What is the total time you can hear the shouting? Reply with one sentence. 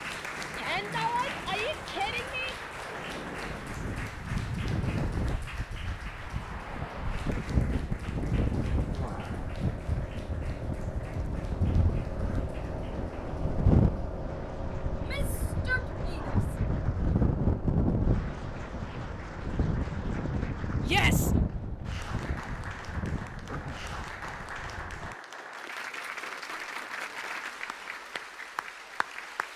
You can hear the shouting for 4 seconds altogether.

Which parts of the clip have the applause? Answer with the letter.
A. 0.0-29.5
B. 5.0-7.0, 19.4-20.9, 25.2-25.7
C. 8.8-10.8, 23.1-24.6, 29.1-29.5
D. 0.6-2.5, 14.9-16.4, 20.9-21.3
A.